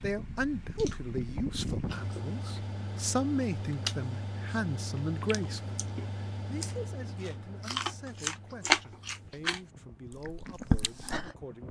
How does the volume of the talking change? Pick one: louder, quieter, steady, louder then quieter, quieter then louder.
quieter.